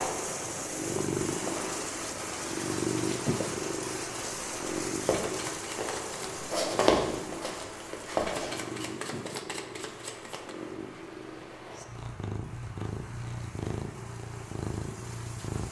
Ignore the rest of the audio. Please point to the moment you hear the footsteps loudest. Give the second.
7 s.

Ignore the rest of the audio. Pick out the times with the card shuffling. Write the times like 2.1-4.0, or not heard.
5.2-6.3, 8.2-10.6.